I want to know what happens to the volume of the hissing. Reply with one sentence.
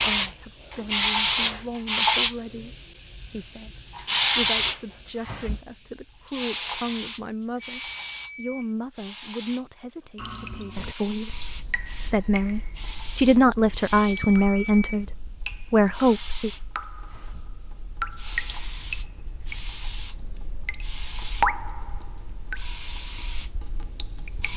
The loudness of the hissing goes down.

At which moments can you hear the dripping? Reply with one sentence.
The dripping can be heard from 10.2 to 24.5 s.